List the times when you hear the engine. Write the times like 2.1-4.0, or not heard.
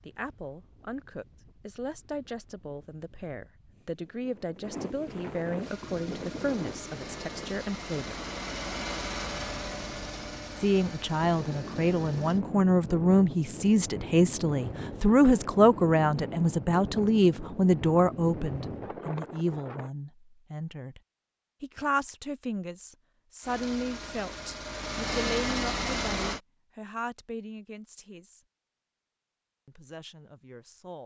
5.6-12.4, 23.4-26.4.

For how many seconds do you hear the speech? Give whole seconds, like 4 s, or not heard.
27 s.